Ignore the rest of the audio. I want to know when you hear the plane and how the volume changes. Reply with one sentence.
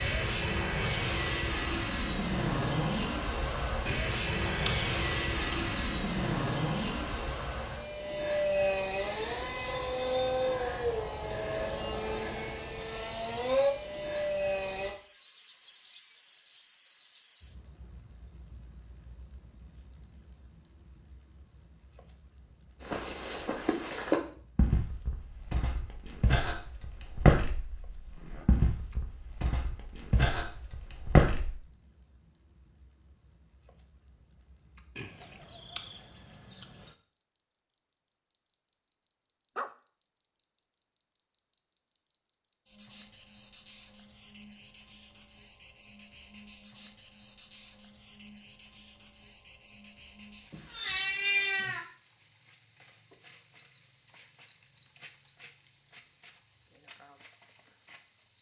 You can hear the plane from 0.0 to 14.9 s, at a steady volume.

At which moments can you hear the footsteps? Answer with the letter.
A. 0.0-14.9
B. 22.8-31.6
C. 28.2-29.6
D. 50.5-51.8
B.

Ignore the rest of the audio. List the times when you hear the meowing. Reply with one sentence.
You can hear the meowing from 50.5 to 51.8 s.